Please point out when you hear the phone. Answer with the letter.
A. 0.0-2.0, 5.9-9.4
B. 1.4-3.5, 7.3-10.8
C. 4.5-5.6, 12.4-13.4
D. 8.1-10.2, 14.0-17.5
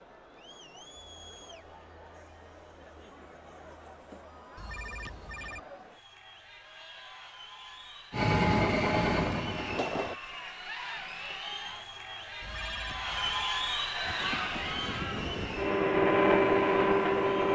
C.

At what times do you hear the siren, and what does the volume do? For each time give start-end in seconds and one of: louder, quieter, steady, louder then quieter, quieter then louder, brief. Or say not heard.
not heard.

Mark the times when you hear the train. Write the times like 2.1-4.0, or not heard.
8.1-10.2, 14.0-17.5.